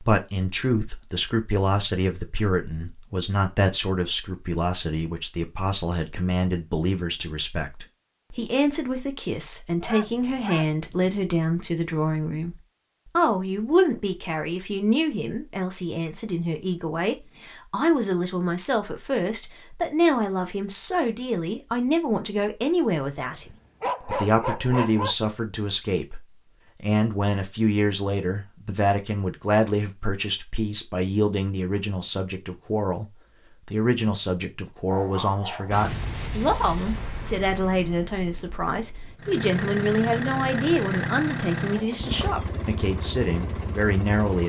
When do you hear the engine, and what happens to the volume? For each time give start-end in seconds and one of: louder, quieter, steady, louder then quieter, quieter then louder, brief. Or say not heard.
39.1-44.4 quieter.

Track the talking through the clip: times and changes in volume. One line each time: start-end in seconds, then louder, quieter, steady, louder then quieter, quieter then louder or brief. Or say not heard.
0.0-33.0 steady
33.6-44.4 steady.